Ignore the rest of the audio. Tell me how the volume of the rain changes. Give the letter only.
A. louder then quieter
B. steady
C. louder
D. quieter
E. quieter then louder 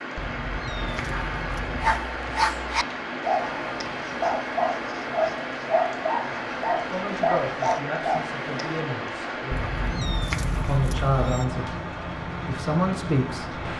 B.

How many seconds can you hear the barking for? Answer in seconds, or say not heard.
7 s.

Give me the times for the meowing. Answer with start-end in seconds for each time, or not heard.
0.1-2.0, 9.5-11.4.